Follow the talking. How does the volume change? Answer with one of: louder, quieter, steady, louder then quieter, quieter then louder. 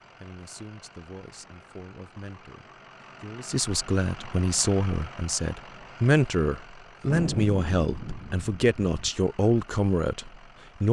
louder.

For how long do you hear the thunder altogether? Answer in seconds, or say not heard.
2 s.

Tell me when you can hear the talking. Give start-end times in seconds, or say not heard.
0.2-10.8.